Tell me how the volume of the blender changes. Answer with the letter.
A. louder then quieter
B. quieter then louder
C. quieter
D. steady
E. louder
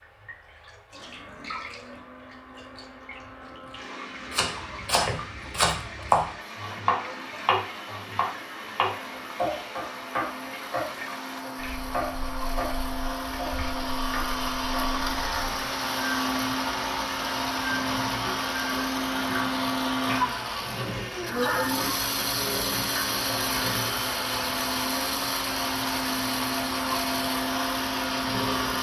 E.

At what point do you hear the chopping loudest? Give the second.
6 s.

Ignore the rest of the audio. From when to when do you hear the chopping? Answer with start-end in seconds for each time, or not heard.
4.3-15.0.